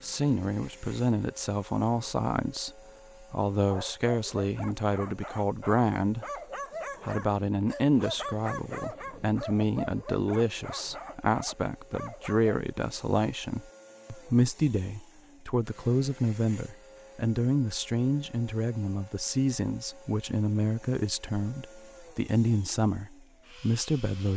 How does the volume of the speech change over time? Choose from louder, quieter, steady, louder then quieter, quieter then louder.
steady.